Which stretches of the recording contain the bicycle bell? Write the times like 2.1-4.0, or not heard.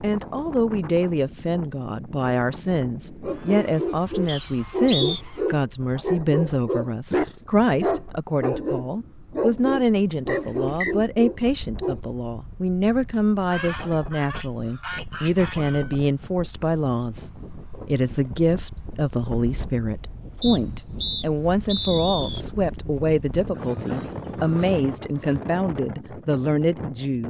not heard.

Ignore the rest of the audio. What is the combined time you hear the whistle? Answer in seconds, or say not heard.
4 s.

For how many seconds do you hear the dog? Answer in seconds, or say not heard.
9 s.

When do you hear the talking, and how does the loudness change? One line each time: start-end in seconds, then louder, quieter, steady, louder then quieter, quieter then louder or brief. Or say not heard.
0.0-27.2 steady.